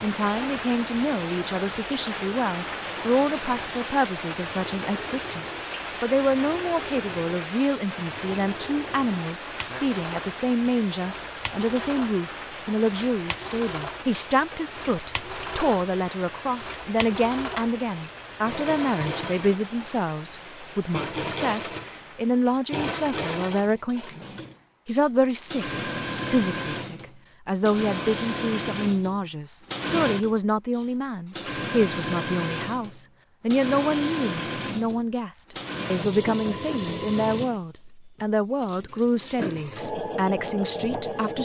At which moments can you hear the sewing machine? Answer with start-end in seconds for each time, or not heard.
0.2-41.4.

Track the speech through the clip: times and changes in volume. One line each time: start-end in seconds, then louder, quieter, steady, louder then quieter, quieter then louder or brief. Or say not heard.
0.0-41.4 steady.